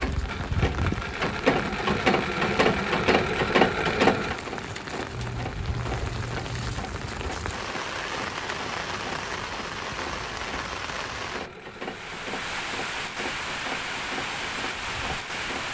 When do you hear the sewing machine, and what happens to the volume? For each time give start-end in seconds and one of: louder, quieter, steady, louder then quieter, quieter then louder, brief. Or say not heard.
0.0-15.6 quieter.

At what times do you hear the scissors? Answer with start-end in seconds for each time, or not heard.
5.1-6.7.